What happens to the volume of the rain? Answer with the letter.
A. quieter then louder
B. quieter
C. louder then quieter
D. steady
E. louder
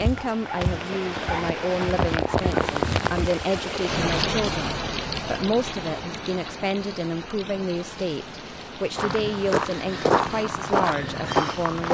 B.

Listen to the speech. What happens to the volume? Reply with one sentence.
The loudness of the speech stays about the same.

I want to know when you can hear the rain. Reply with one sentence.
The rain can be heard from 0.0 to 11.8 s.